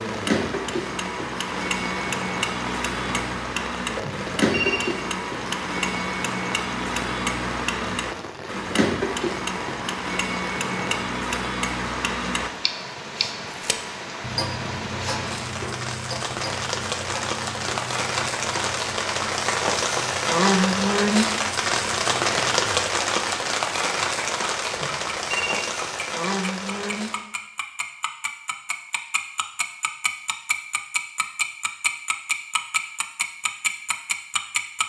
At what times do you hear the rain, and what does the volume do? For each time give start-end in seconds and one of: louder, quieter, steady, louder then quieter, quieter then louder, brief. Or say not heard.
0.0-27.2 louder.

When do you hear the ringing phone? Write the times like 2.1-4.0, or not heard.
4.0-4.8, 24.7-25.6.